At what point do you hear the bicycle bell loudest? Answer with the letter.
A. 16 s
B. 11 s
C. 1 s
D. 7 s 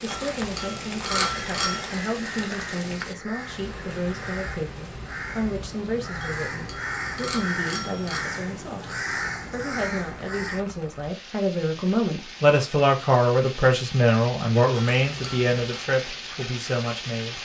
C.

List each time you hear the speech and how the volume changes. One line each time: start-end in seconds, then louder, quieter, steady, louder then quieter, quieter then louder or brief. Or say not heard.
0.0-17.4 louder.